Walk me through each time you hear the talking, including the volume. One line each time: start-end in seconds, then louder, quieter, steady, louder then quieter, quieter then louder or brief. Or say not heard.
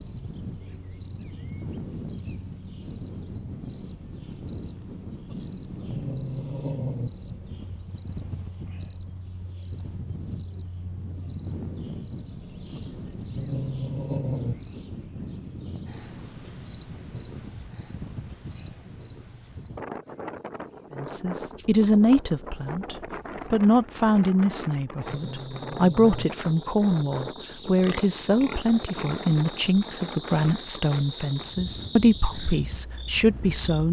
20.9-33.8 steady.